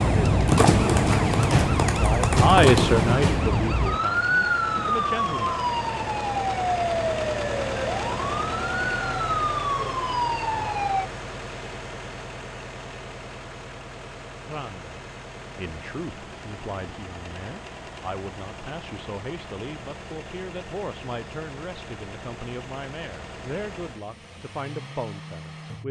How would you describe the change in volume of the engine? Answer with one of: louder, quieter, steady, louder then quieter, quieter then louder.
quieter.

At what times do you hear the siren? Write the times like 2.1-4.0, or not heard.
0.0-11.1.